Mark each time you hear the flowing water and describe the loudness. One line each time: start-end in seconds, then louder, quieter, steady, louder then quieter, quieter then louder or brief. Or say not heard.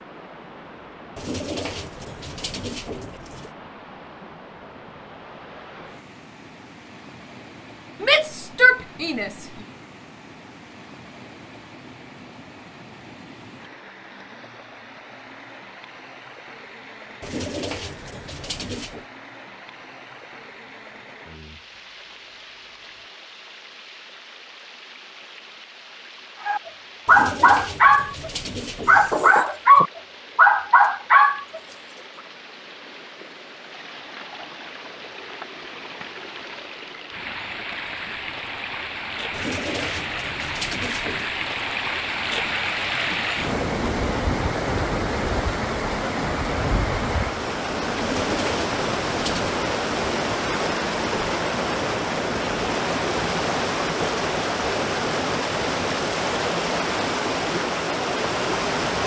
0.0-59.0 louder.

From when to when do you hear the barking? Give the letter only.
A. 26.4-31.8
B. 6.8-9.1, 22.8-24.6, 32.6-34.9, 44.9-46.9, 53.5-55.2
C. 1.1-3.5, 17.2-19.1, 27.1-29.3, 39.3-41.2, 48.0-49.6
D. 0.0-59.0
A.